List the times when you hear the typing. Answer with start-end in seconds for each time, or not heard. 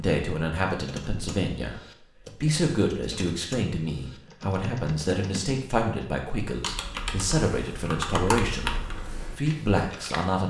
0.7-10.2.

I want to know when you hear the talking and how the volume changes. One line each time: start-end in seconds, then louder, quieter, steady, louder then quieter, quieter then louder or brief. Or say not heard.
0.0-10.4 steady.